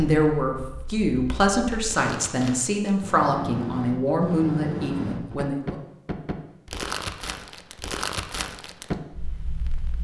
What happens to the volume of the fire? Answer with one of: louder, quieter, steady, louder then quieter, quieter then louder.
louder.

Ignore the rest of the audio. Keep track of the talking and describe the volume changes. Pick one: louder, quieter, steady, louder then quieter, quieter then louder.
steady.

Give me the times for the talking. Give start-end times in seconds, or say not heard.
0.0-5.8.